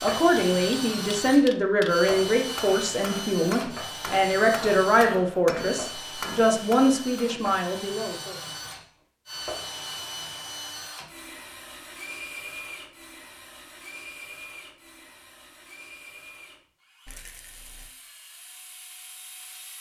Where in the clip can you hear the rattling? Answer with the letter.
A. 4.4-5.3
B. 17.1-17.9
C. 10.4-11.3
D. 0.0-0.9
B.